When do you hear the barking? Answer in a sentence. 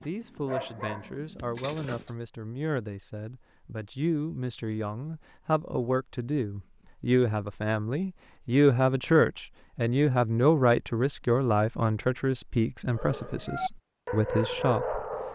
You can hear the barking from 0.0 to 2.1 s and from 12.9 to 15.2 s.